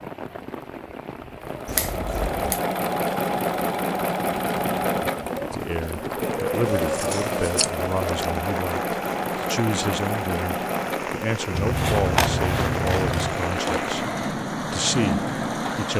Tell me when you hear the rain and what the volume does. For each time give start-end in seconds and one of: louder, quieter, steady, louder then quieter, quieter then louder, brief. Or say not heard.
0.0-15.9 louder.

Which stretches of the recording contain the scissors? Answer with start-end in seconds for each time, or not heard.
1.6-2.6, 6.7-8.2, 11.6-13.4.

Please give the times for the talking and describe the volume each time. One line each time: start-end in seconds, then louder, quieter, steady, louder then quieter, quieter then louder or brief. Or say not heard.
5.5-15.9 steady.